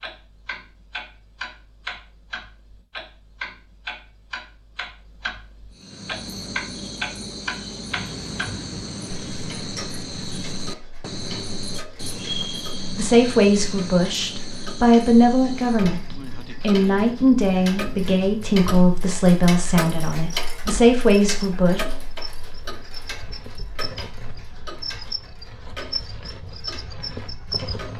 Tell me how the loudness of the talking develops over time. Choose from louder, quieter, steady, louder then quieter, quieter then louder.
steady.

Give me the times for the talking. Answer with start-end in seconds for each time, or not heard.
12.9-21.9.